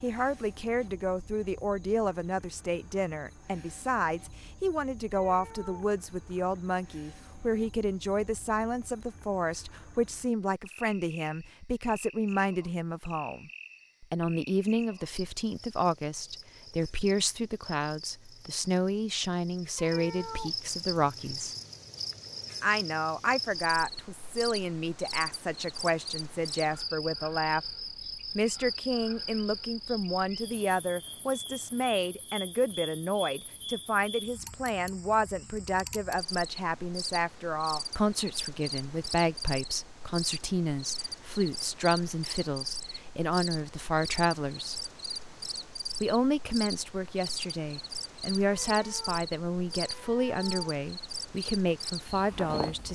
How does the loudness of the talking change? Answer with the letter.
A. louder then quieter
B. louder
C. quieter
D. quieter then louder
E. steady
E.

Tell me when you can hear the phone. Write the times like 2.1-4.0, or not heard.
not heard.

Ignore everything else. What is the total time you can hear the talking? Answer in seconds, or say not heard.
50 s.